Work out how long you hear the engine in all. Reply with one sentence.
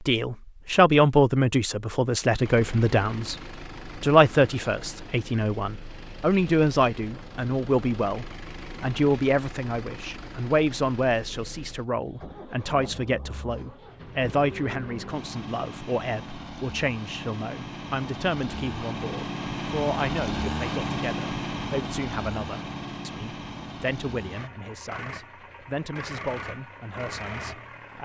The engine can be heard for 26 seconds in total.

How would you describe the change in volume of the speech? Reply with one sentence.
The volume of the speech goes down.